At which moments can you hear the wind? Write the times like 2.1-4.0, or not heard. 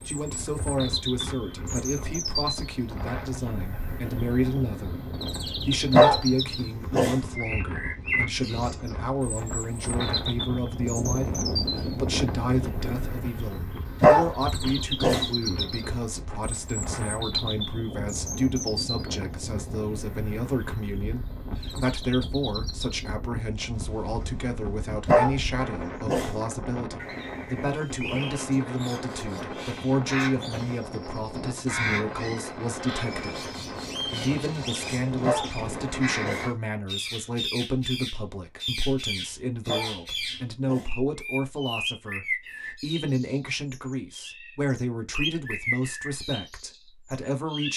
0.0-36.5.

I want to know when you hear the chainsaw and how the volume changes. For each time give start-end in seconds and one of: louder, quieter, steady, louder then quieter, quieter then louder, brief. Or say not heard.
not heard.